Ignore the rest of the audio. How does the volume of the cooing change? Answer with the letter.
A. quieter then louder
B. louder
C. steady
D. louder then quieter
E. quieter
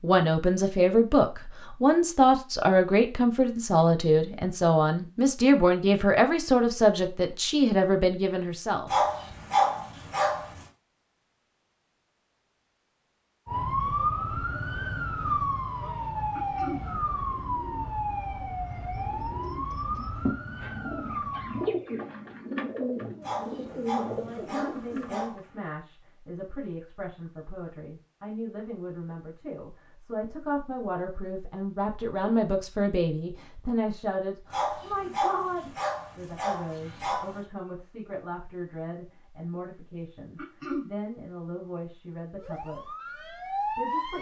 B.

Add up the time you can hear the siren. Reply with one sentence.
The siren can be heard for 10 seconds in total.